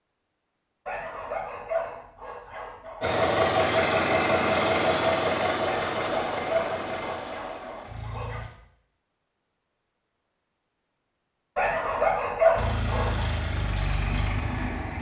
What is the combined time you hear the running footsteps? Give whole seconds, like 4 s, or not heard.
not heard.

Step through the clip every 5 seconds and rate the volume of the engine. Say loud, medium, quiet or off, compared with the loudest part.
loud, medium, medium.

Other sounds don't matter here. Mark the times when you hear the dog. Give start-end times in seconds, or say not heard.
0.8-3.0, 5.7-8.4, 11.6-13.2.